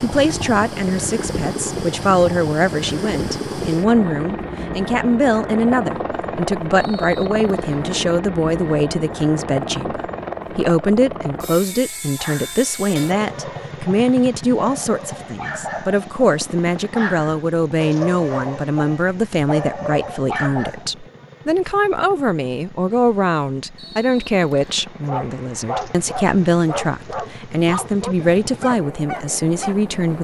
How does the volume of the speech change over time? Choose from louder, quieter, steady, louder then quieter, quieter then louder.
steady.